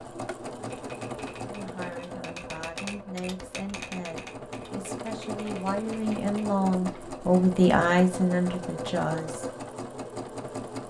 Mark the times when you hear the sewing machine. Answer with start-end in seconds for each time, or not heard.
0.0-10.8.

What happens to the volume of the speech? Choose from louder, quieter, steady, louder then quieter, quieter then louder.
louder.